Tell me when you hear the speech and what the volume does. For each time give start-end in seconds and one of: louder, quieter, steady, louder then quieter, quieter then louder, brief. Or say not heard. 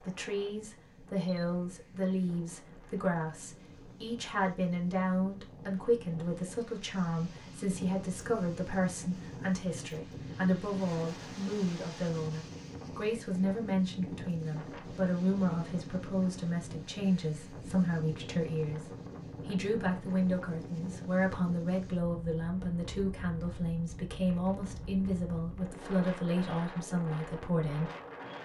0.0-27.9 steady.